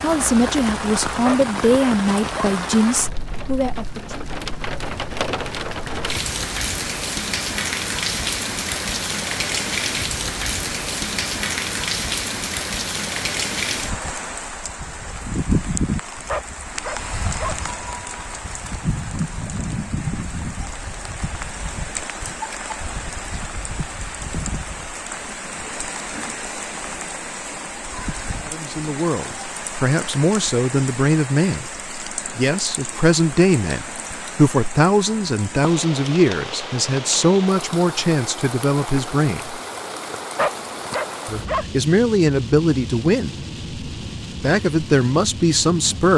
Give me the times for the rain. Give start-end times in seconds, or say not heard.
0.0-46.1.